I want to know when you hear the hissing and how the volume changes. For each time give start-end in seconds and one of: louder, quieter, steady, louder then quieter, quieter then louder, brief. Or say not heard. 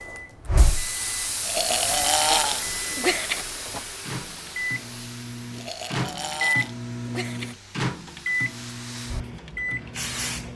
0.1-10.5 quieter then louder.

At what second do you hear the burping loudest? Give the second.
2 s.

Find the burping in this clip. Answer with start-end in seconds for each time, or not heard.
1.4-3.5, 5.5-7.5.